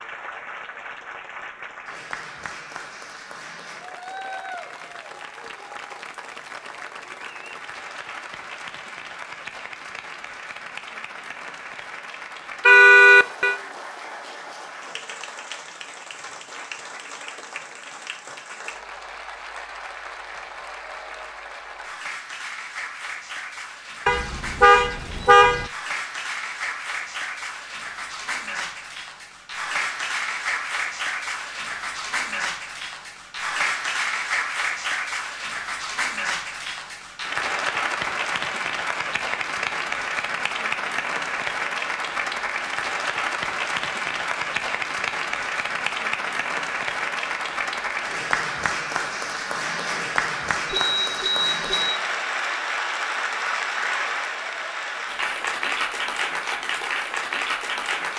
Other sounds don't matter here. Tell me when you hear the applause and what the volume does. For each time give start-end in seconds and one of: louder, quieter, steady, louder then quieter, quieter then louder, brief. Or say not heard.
0.0-58.1 louder.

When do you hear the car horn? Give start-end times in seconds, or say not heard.
12.7-13.6, 24.1-25.7, 50.6-52.0.